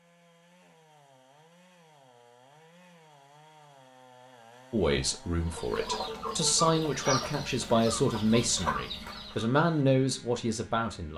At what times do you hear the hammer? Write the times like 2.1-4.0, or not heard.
not heard.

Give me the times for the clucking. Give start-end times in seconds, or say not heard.
5.4-9.4.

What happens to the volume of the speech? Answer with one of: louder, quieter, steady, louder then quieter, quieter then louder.
louder.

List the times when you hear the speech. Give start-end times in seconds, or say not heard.
4.7-11.1.